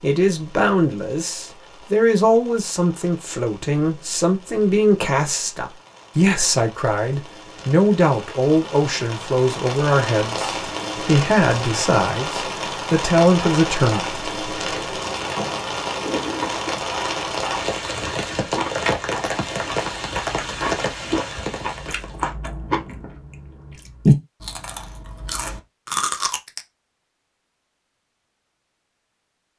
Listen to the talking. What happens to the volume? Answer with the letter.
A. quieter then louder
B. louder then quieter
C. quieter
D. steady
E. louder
D.